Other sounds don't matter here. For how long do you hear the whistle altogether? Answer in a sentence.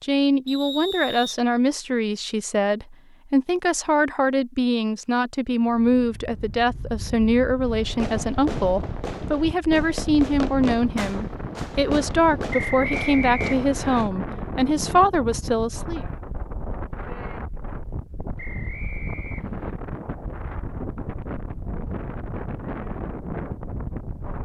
You can hear the whistle for 4 seconds altogether.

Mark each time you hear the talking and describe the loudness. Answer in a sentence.
The talking can be heard from 0.0 to 16.1 s, at a steady volume.